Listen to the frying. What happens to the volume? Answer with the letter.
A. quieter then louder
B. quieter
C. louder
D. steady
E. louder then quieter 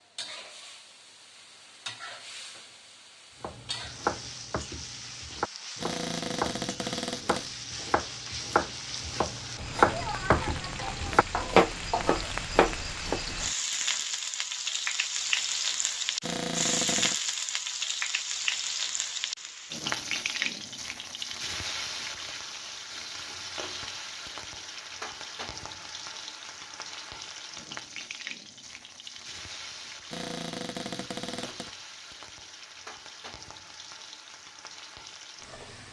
E.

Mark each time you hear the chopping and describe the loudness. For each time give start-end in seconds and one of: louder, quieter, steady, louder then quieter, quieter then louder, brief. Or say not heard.
3.4-13.2 louder.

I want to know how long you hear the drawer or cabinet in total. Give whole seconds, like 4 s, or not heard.
4 s.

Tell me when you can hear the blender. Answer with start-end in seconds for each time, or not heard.
not heard.